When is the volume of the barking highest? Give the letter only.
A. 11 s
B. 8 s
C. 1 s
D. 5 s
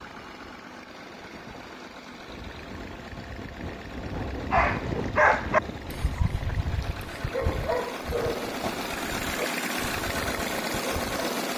D.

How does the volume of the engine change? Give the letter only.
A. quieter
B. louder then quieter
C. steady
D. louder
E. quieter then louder
D.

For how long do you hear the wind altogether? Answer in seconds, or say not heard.
7 s.